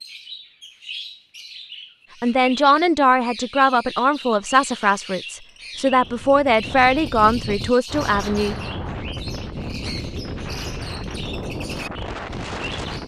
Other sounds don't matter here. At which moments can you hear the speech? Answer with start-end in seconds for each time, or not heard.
2.2-8.6.